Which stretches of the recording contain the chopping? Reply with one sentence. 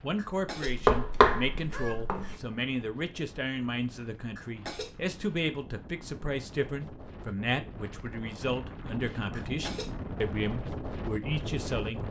The chopping can be heard from 0.7 to 2.4 s.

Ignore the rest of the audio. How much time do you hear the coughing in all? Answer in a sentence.
You can hear the coughing for 3 seconds altogether.